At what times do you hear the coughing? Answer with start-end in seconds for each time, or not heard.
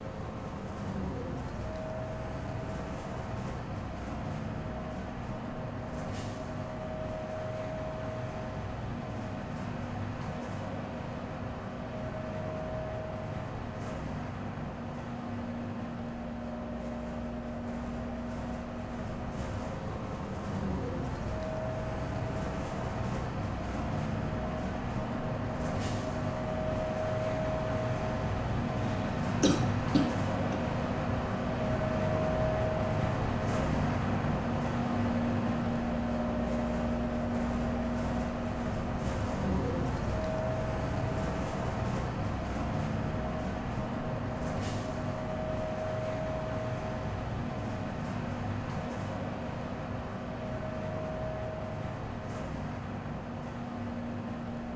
28.8-30.6.